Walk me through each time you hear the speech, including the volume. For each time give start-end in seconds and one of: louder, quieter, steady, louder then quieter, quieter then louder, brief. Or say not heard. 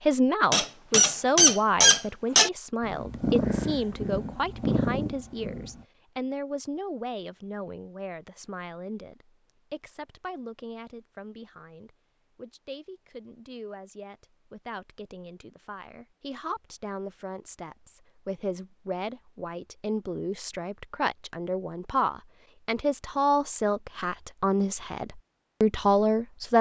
0.1-26.5 quieter then louder.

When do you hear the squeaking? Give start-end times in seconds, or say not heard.
0.5-2.5.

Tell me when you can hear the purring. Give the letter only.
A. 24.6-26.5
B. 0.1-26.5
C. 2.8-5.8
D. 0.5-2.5
C.